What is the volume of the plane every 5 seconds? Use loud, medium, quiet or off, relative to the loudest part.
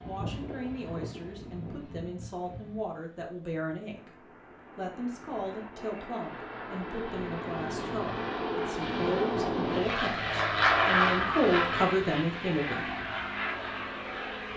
quiet, medium, loud.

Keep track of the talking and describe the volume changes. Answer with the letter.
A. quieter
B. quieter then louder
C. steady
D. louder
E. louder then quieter
D.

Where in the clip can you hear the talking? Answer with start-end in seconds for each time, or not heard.
0.1-12.9.